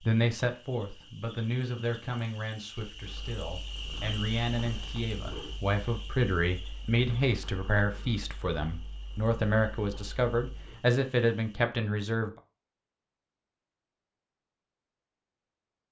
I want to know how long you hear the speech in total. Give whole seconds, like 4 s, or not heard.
12 s.